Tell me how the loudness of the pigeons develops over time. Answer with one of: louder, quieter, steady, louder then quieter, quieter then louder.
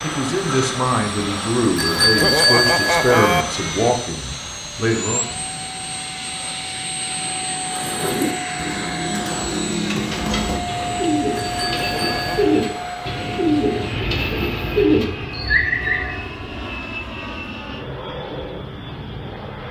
louder.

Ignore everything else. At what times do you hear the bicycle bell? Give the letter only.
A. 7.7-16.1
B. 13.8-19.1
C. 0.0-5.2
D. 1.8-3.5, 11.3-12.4
D.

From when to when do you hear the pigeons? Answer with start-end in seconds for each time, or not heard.
7.7-16.1.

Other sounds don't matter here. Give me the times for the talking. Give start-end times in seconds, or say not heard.
0.0-5.2.